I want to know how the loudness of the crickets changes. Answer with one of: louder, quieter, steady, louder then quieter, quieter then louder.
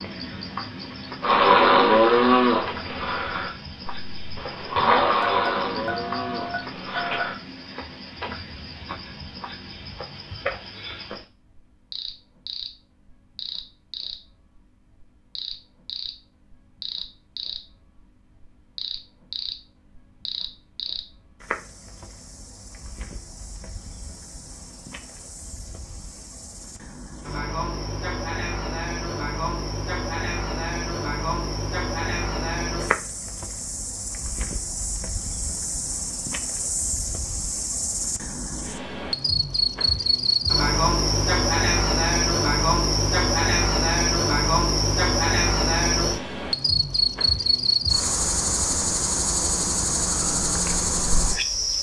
louder.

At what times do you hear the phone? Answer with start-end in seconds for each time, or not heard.
5.2-7.2.